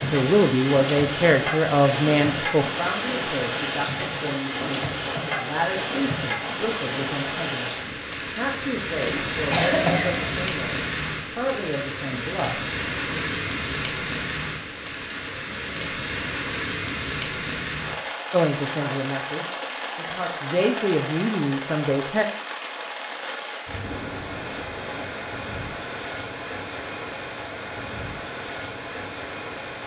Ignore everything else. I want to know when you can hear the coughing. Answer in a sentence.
You can hear the coughing from 9.0 to 10.4 s.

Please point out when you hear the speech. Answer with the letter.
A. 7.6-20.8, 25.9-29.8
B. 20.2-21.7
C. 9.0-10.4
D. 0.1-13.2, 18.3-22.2
D.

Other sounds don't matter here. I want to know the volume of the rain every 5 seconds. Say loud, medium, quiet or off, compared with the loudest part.
loud, loud, loud, loud, medium, medium.